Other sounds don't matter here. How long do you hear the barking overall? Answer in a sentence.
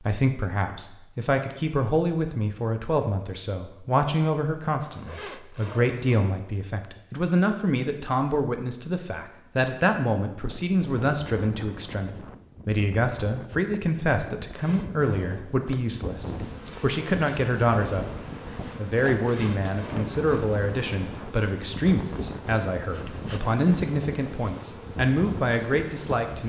You can't hear the barking here.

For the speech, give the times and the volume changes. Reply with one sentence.
You can hear the speech from 0.0 to 26.4 s, at a steady volume.